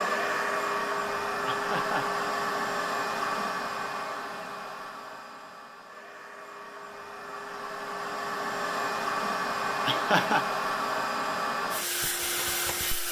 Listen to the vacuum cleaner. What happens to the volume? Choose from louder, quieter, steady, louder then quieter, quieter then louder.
quieter then louder.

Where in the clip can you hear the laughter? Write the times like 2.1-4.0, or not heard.
1.4-2.1, 9.8-10.4.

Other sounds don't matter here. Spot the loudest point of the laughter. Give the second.
10 s.